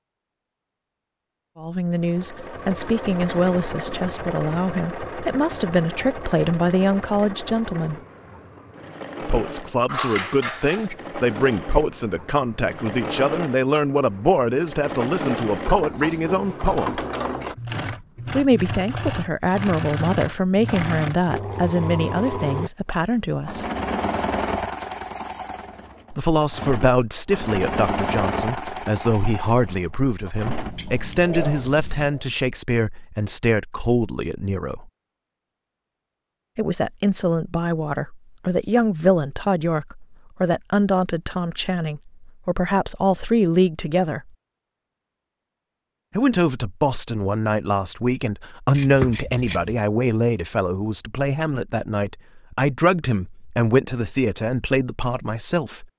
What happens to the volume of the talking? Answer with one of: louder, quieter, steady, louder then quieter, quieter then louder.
steady.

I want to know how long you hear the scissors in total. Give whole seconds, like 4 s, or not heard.
4 s.